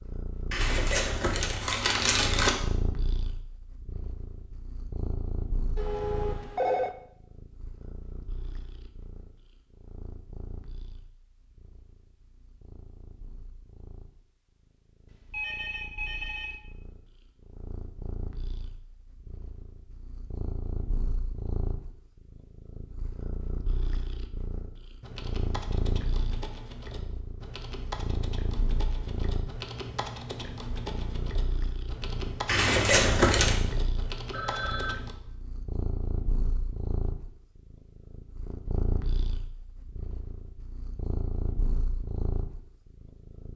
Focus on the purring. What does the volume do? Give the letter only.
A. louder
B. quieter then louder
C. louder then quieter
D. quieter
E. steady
B.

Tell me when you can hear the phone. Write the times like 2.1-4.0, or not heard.
5.8-6.9, 15.3-16.6, 34.3-35.0.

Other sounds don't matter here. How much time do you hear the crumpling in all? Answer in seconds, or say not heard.
3 s.